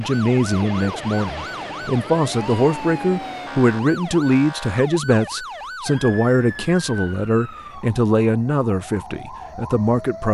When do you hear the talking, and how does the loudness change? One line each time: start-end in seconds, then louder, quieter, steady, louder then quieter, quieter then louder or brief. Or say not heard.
0.0-10.2 steady.